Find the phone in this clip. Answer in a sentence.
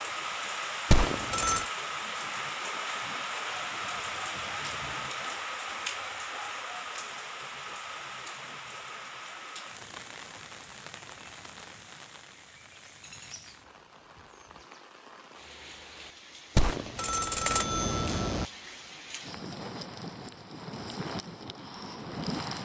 The phone can be heard from 0.9 to 1.7 s and from 16.6 to 18.4 s.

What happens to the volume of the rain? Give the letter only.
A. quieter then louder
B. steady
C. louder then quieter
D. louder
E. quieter
A.